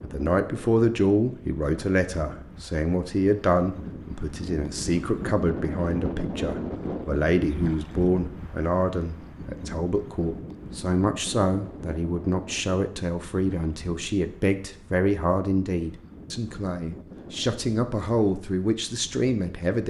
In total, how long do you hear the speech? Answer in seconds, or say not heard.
20 s.